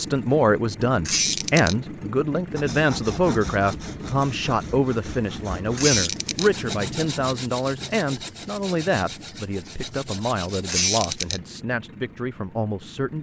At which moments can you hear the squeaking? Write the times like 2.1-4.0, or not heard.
1.1-1.8, 5.8-6.5, 10.7-11.4.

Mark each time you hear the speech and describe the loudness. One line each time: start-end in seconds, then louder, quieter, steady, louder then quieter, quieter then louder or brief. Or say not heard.
0.0-13.1 quieter.